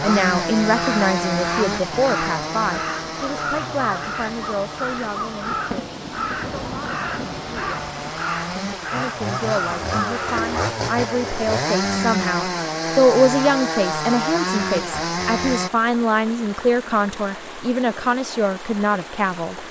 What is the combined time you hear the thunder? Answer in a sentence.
You can hear the thunder for 3 seconds altogether.